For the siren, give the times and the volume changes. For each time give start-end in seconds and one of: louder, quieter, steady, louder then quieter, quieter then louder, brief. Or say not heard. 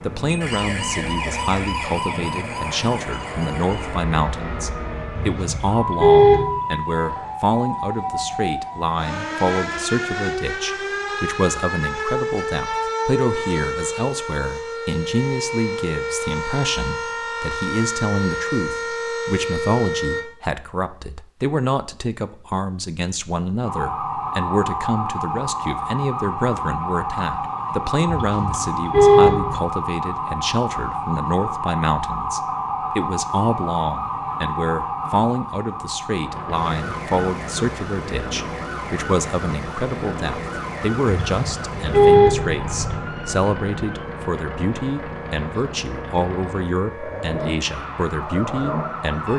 0.0-20.2 steady
23.6-49.3 quieter.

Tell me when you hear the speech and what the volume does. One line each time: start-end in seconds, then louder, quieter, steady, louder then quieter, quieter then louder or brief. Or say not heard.
0.0-49.3 steady.